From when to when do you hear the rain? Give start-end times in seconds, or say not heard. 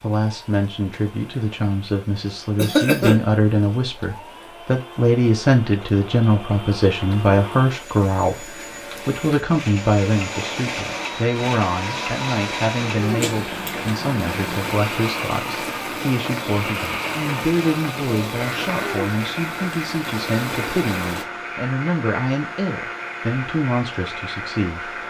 0.0-21.2.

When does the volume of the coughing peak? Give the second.
3 s.